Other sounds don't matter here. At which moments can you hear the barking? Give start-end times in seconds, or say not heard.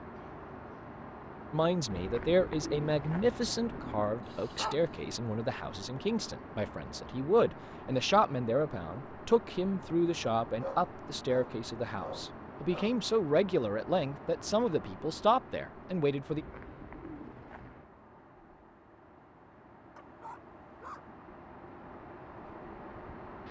4.2-4.8, 10.6-13.0, 19.9-21.1.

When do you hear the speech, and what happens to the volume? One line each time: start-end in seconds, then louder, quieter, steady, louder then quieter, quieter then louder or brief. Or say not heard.
1.5-16.4 steady.